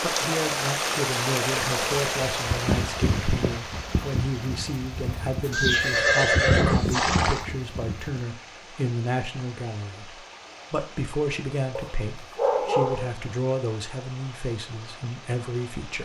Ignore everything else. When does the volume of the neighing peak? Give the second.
6 s.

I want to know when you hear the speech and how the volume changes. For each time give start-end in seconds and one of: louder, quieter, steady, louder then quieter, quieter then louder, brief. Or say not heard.
0.0-16.0 steady.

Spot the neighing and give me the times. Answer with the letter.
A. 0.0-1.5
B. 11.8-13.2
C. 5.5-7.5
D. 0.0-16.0
C.